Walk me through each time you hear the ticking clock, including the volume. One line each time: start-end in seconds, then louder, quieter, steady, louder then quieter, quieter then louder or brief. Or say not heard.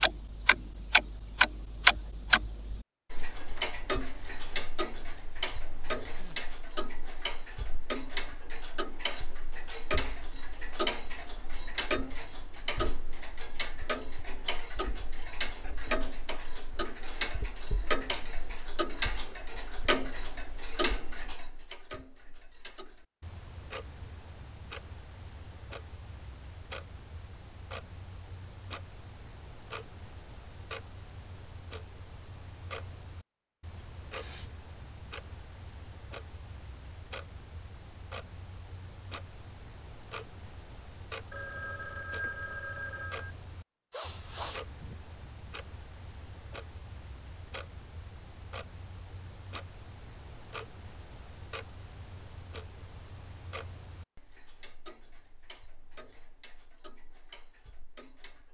0.0-58.4 quieter.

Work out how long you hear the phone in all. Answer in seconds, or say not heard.
2 s.